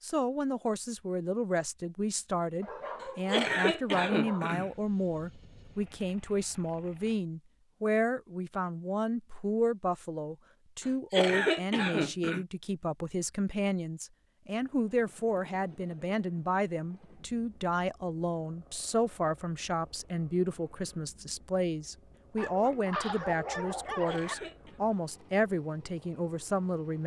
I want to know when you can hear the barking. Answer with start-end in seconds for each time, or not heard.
2.6-4.5, 22.4-24.4.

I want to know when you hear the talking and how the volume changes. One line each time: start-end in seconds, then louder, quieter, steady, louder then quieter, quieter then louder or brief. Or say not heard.
0.0-27.0 steady.